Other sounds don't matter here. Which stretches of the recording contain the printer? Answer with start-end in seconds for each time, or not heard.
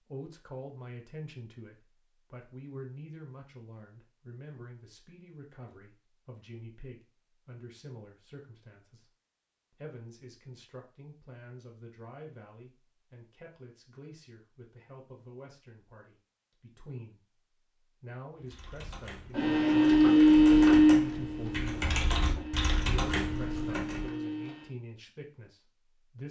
19.3-24.7.